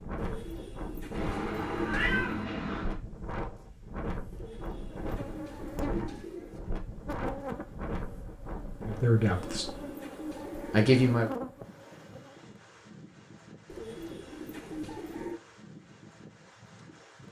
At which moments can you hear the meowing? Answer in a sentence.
You can hear the meowing from 1.1 to 3.0 s.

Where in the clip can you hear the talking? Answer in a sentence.
The talking can be heard from 8.8 to 9.7 s and from 10.7 to 11.3 s.